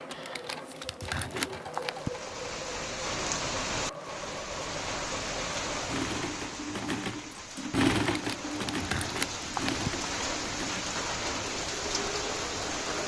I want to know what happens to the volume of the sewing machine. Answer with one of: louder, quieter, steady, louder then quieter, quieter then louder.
louder then quieter.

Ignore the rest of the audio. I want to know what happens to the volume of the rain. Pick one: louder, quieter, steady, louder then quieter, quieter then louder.
quieter then louder.